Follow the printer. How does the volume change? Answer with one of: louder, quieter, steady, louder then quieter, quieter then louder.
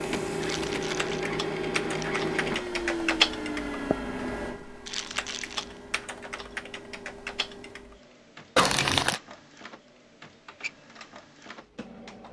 quieter.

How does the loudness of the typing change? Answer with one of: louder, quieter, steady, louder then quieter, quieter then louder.
louder then quieter.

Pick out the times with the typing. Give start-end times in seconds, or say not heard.
0.9-8.0.